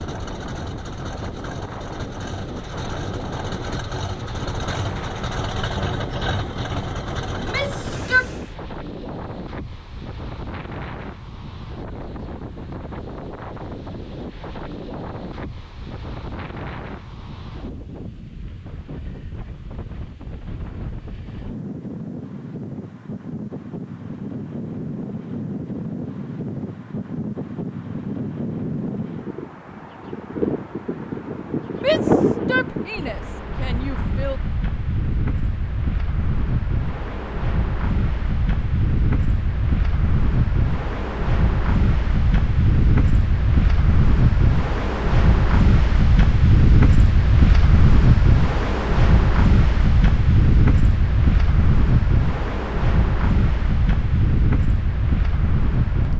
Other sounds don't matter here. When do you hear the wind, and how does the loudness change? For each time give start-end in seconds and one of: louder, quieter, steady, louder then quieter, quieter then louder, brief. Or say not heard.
0.0-56.1 louder.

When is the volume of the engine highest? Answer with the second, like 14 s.
6 s.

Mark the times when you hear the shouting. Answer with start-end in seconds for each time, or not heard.
7.3-8.3, 31.8-34.4.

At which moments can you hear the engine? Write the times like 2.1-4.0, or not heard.
0.0-8.6.